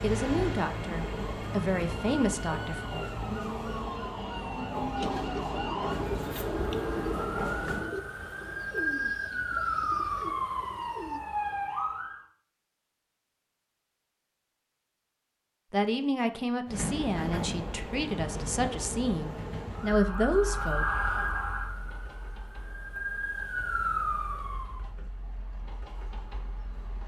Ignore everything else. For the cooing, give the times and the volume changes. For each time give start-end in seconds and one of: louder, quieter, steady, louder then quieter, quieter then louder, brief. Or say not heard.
5.0-11.2 quieter.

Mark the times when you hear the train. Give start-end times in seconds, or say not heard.
0.0-7.8, 16.6-27.0.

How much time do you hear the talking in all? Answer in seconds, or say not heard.
8 s.